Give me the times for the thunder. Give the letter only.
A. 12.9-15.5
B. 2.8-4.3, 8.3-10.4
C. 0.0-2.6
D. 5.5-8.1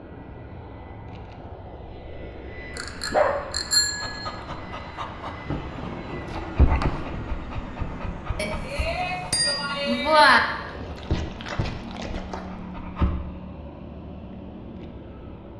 D.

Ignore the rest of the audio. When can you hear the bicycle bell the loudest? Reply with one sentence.
The loudest moment of the bicycle bell is at 10 seconds.